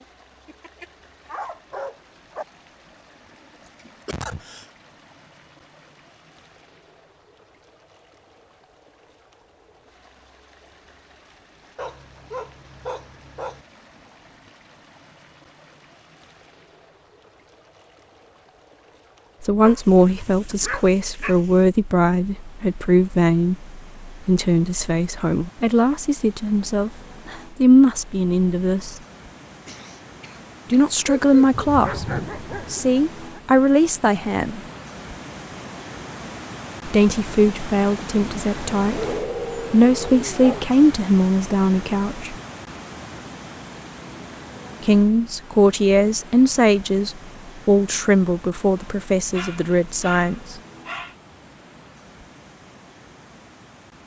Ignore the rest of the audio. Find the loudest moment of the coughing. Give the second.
4 s.